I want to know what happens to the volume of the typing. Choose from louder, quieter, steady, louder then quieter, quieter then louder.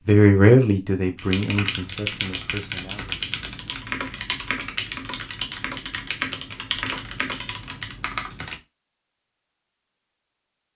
steady.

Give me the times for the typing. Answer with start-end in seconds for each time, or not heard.
1.1-8.6.